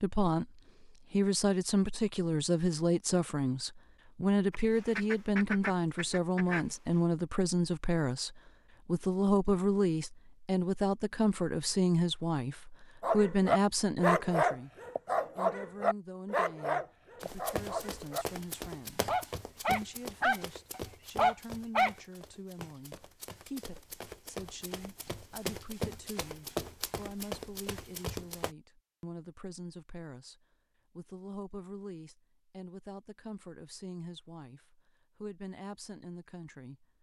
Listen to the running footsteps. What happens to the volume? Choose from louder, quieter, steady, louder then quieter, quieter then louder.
quieter then louder.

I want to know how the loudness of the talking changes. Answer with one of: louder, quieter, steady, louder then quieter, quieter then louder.
quieter.